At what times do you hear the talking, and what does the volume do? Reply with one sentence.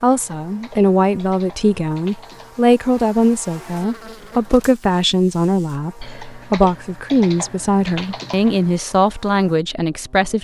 The talking can be heard from 0.0 to 10.3 s, at a steady volume.